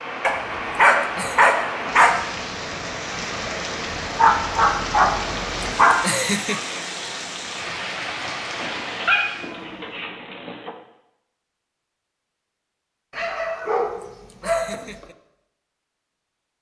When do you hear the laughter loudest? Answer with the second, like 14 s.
6 s.